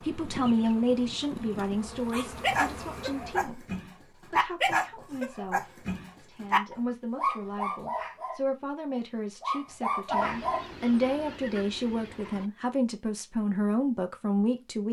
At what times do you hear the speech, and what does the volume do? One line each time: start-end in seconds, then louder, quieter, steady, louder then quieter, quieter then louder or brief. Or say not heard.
0.0-14.8 quieter then louder.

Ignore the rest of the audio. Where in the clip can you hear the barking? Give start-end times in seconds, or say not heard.
2.1-10.7.